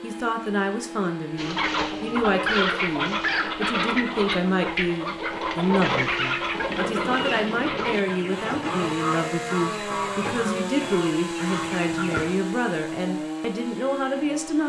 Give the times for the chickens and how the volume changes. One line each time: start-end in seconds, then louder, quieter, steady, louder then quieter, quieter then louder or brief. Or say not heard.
1.4-12.3 quieter.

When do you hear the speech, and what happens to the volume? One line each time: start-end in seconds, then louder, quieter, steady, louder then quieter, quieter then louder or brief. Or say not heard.
0.0-14.6 steady.